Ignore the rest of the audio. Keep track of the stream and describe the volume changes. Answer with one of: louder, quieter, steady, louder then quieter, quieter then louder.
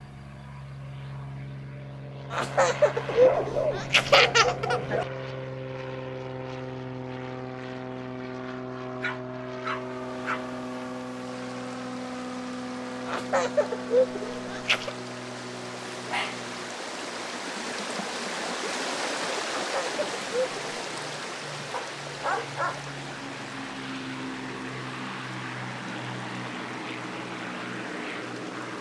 louder then quieter.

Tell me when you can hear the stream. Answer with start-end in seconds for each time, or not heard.
9.8-28.7.